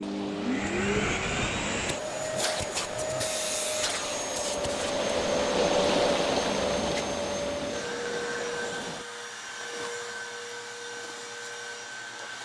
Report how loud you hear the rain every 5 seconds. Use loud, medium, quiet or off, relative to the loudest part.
medium, loud, off.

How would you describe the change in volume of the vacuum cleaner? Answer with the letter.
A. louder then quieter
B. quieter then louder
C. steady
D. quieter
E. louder
D.